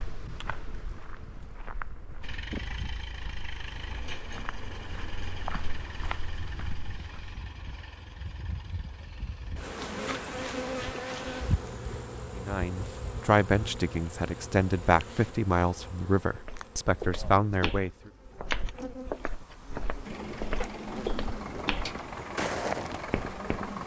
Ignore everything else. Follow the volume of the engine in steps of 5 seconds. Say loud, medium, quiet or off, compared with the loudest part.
medium, medium, off, off, loud.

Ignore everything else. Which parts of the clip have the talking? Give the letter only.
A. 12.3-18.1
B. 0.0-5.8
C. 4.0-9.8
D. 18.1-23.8
A.